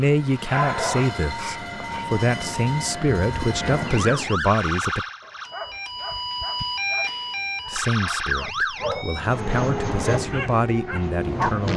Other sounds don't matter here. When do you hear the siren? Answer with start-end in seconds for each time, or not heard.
0.0-11.7.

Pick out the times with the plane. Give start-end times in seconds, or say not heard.
0.0-4.4, 9.2-11.7.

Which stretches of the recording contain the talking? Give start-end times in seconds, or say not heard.
0.0-5.0, 7.7-11.7.